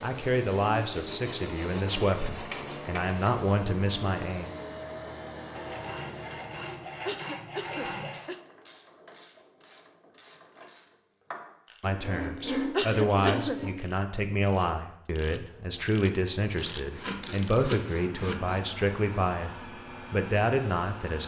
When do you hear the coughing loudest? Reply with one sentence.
The volume of the coughing peaks at 13 seconds.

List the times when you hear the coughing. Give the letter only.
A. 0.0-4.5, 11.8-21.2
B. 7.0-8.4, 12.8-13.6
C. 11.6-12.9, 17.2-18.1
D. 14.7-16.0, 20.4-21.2
B.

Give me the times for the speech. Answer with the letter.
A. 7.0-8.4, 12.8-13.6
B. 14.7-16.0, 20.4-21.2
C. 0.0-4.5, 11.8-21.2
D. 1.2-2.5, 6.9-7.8
C.